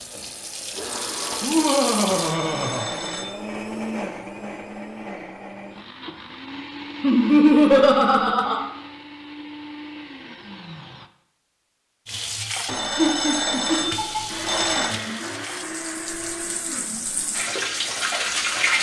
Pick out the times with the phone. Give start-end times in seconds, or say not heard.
2.0-3.5, 12.7-14.9.